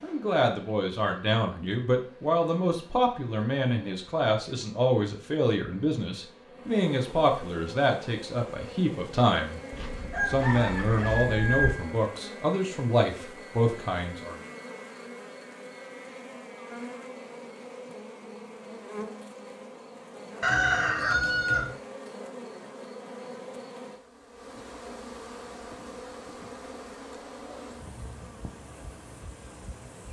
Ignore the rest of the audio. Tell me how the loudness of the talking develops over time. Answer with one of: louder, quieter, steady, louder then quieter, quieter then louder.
steady.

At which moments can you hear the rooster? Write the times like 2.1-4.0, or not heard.
9.7-11.8, 20.4-21.7.